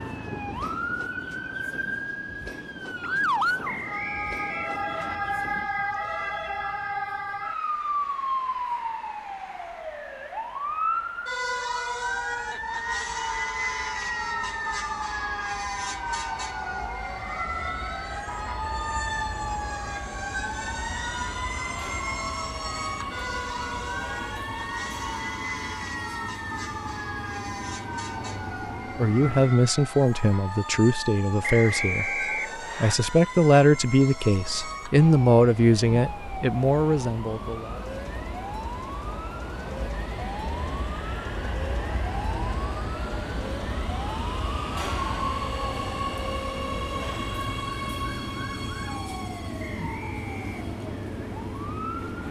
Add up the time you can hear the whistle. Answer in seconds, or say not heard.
4 s.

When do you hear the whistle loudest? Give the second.
32 s.